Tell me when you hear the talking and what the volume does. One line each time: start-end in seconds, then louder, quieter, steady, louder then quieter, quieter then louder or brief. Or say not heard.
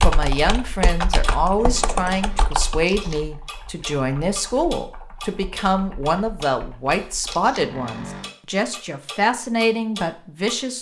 0.0-10.7 steady.